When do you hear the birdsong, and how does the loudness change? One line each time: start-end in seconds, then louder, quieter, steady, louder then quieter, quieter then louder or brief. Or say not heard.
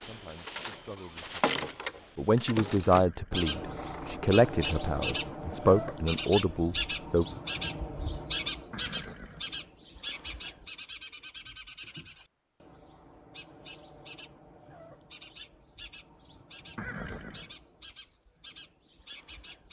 0.0-19.6 quieter.